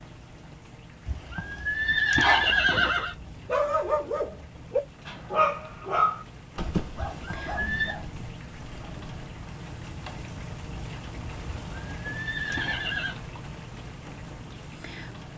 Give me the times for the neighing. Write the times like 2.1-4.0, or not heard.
1.1-3.1, 7.1-8.0, 11.7-13.2.